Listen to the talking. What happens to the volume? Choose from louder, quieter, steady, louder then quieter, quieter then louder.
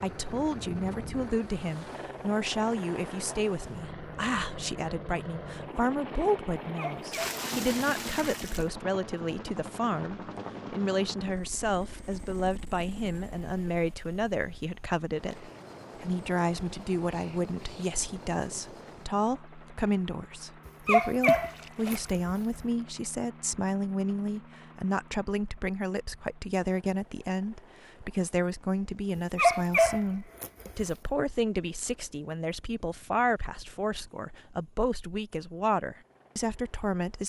steady.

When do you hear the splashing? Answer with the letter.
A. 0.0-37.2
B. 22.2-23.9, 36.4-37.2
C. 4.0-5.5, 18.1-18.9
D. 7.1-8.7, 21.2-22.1
D.